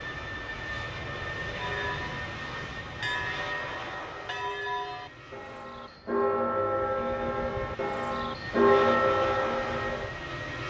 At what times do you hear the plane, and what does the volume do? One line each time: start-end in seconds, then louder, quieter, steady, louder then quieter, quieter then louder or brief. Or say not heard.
0.0-10.6 quieter then louder.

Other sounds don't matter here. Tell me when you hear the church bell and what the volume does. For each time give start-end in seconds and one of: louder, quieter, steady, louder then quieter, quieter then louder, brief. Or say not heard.
1.6-10.1 louder.